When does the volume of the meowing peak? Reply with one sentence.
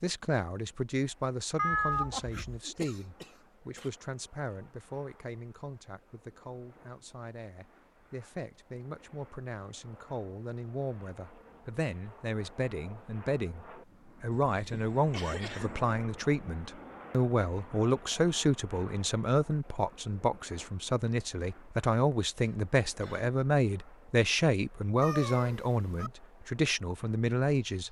The volume of the meowing peaks at 2 seconds.